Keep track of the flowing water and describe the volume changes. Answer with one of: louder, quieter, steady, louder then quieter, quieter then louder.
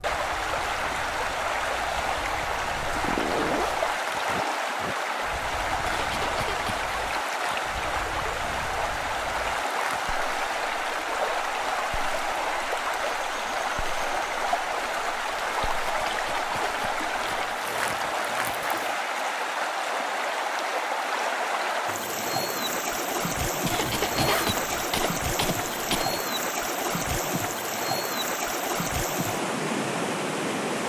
steady.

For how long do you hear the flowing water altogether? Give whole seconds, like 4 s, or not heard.
31 s.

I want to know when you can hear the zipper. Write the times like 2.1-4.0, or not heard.
2.8-4.0, 17.2-19.0, 23.8-24.9.